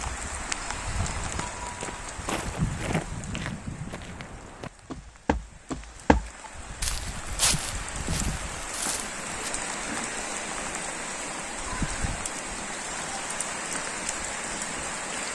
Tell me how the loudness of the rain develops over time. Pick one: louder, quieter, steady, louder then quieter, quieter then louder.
quieter then louder.